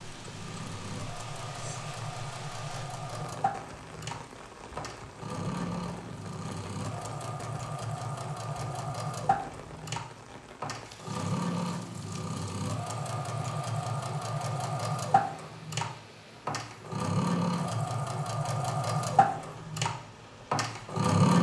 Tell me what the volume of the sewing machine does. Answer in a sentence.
The loudness of the sewing machine goes up.